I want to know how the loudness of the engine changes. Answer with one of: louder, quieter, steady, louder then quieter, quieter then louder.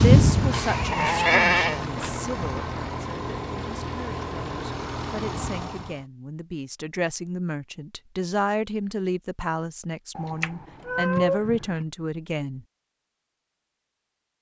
steady.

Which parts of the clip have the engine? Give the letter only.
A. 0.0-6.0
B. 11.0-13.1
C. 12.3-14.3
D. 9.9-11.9
A.